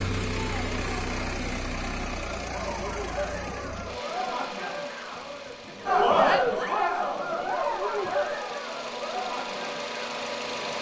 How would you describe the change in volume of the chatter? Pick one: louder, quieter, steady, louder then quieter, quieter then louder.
louder then quieter.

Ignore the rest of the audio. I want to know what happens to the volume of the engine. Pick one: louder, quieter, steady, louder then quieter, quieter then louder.
quieter then louder.